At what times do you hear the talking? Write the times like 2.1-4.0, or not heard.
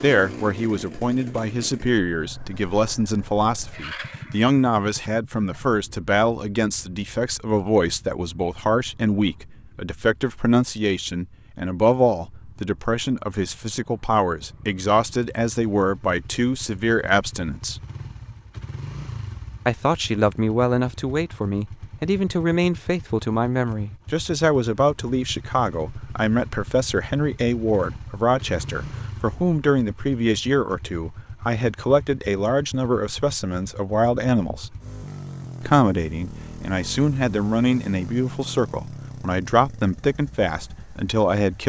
0.0-17.8, 19.6-34.8, 35.6-41.6.